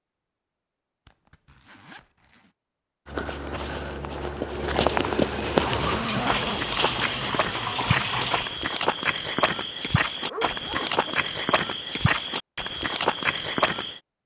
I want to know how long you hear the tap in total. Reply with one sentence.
You can hear the tap for 3 seconds altogether.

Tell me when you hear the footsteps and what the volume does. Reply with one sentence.
The footsteps can be heard from 3.0 to 14.0 s, at a steady volume.